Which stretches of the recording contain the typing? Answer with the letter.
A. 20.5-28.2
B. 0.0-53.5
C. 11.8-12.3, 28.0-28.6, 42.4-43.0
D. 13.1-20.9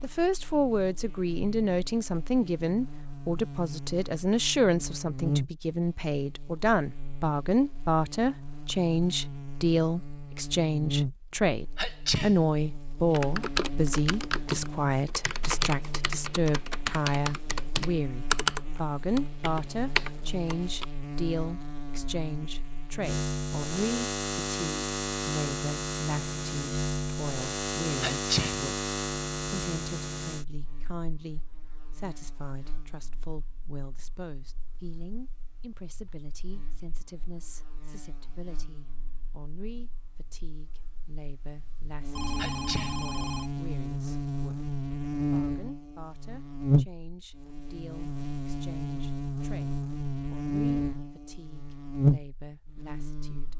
D.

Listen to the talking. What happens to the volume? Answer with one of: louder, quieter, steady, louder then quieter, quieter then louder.
quieter.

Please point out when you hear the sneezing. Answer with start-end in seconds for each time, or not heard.
11.8-12.3, 28.0-28.6, 42.4-43.0.